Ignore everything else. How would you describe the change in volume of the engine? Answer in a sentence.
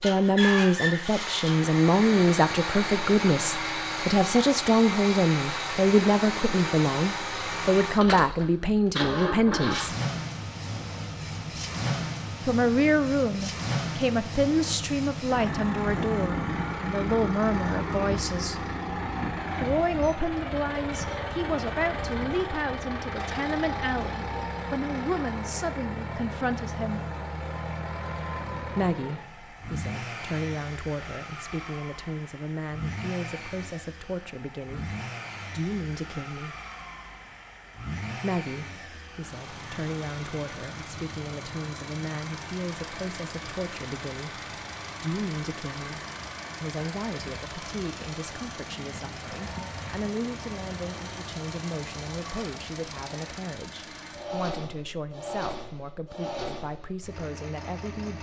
The volume of the engine goes down.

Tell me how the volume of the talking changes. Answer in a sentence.
The loudness of the talking goes down.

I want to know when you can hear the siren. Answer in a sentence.
The siren can't be heard in this clip.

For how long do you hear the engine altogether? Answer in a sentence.
The engine can be heard for 58 seconds in total.